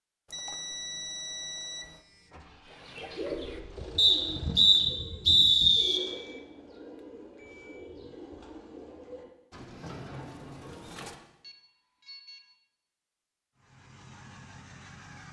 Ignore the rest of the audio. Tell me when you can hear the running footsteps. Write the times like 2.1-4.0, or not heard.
not heard.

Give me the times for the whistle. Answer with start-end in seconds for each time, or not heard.
4.0-6.0.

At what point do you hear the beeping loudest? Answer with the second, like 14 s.
1 s.